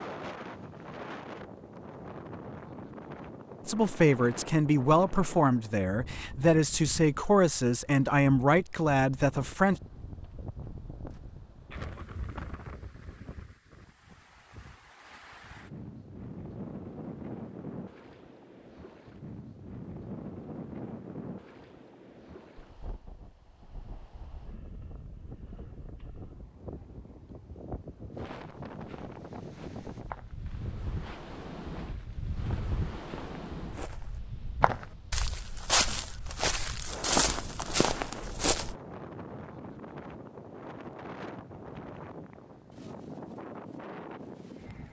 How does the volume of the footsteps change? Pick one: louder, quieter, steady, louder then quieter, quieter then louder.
quieter then louder.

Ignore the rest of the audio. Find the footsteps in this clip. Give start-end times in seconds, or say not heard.
28.1-38.8.